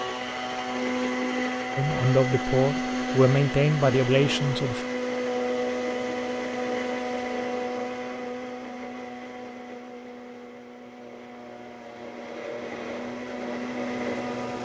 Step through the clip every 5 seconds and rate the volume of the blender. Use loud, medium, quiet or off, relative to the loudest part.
loud, loud, medium.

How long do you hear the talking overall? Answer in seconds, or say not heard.
3 s.